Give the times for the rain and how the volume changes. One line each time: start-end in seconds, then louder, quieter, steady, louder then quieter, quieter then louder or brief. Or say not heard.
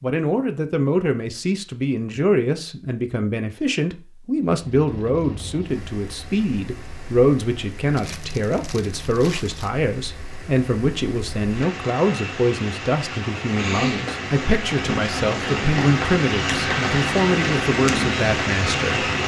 4.5-19.2 louder.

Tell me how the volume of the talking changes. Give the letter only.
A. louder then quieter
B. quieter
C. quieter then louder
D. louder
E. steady
E.